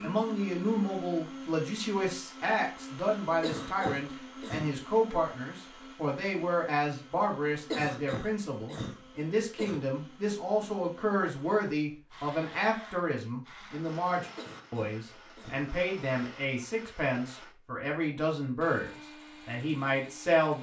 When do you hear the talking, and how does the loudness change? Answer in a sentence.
You can hear the talking from 0.0 to 20.5 s, at a steady volume.